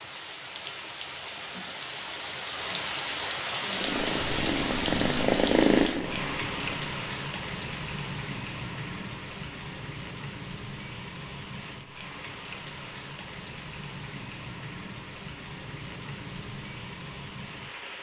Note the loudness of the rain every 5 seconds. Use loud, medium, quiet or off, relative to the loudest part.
loud, loud, medium, medium.